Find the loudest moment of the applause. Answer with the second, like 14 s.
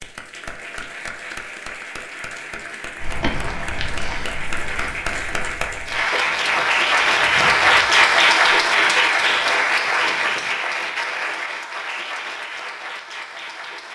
8 s.